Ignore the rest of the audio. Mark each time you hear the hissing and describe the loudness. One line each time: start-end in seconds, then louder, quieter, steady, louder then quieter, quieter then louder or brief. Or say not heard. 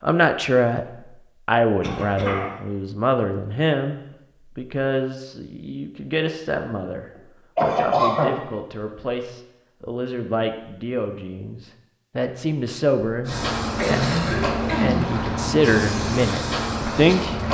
13.2-17.4 steady.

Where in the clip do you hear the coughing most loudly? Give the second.
8 s.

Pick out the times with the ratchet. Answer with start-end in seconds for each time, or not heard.
not heard.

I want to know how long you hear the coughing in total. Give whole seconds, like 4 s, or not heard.
3 s.